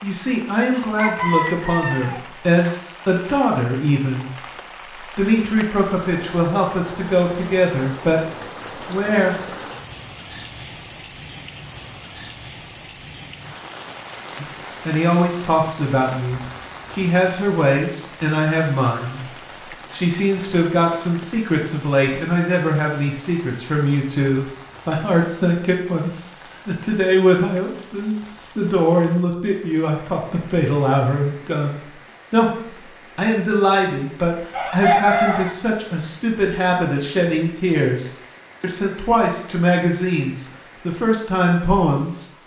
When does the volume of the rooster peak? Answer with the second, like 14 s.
35 s.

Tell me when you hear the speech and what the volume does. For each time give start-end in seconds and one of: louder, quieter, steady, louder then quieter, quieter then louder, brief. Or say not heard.
0.0-9.3 steady
14.4-42.2 steady.